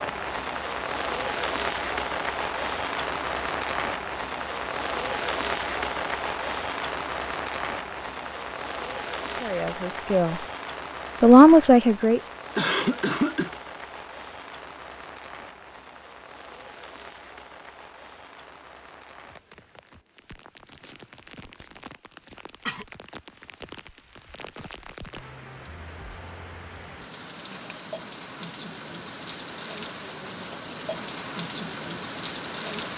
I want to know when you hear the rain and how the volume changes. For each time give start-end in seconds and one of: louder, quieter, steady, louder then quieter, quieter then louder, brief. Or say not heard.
0.0-32.9 quieter then louder.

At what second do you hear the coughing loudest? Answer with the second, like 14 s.
13 s.